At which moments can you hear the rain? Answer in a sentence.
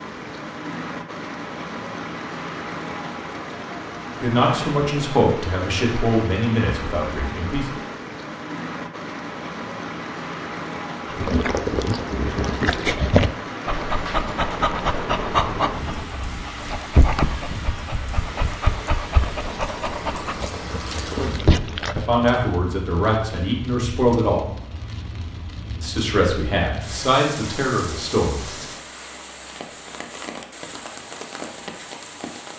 You can hear the rain from 0.0 to 32.5 s.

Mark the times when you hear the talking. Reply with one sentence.
The talking can be heard from 4.2 to 7.7 s, from 21.1 to 24.4 s and from 25.8 to 28.4 s.